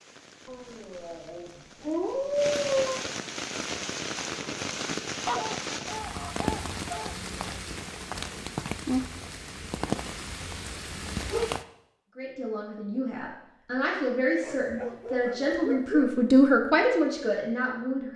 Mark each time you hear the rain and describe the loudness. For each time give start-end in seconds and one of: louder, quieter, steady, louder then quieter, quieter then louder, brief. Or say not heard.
0.0-11.7 louder.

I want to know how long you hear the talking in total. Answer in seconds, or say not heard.
6 s.